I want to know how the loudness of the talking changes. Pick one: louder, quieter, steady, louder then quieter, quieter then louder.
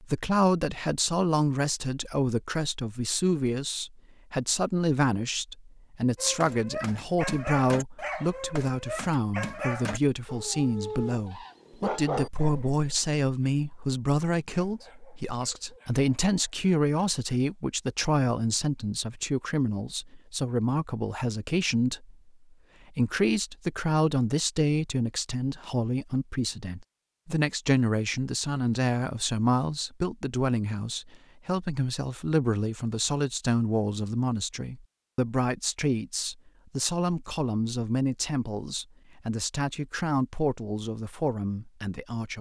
steady.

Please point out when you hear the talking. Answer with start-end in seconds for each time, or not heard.
0.0-22.1, 22.9-42.3.